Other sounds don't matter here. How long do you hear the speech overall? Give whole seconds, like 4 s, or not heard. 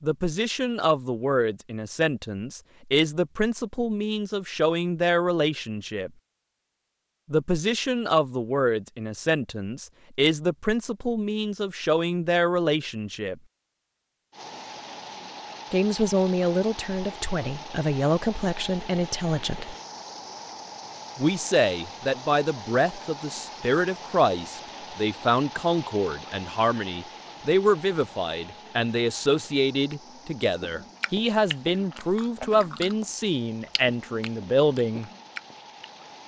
30 s.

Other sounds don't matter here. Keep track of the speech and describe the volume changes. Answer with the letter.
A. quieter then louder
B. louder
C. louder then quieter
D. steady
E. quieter
D.